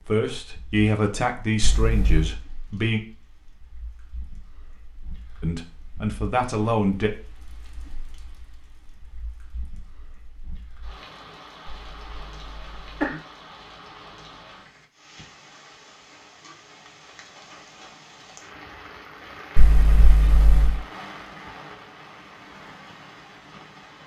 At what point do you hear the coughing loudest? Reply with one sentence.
The loudest moment of the coughing is at 13 seconds.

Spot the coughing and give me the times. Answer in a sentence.
You can hear the coughing from 1.6 to 2.4 s, from 11.7 to 13.2 s and from 19.6 to 20.8 s.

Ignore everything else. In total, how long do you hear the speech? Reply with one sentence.
The speech can be heard for 5 seconds in total.